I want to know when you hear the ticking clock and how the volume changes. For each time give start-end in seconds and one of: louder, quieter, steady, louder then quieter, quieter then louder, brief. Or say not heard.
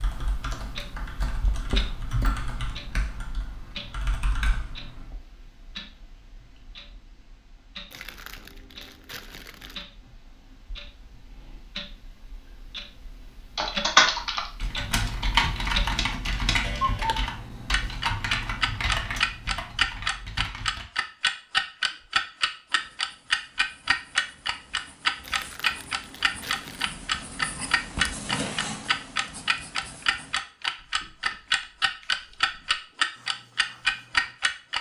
0.0-34.7 louder.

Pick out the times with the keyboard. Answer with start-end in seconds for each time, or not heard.
0.0-5.1, 13.6-20.9.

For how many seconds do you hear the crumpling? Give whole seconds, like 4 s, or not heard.
4 s.